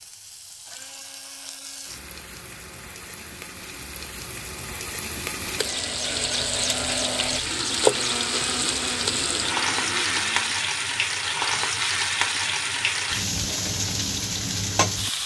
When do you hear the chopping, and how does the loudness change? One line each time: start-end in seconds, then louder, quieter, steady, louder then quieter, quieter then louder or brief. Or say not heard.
not heard.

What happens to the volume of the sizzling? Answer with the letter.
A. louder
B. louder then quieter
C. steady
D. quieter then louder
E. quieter
A.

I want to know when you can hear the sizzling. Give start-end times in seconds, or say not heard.
0.0-15.2.